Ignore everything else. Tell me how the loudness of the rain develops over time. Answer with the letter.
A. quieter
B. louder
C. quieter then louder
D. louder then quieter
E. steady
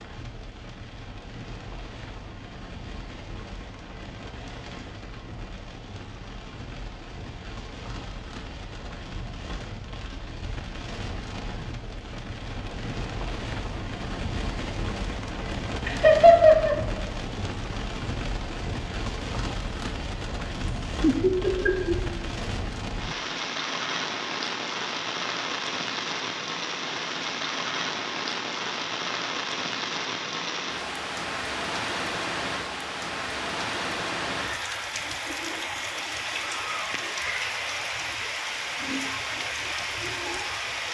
B.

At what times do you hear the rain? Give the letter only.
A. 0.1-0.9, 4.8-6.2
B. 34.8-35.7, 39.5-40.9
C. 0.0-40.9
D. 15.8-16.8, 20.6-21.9
C.